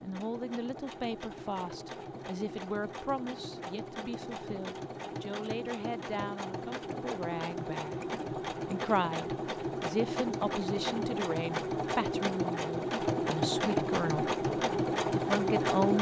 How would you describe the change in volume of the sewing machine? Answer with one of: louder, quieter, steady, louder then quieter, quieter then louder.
louder.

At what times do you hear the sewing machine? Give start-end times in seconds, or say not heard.
0.0-15.9.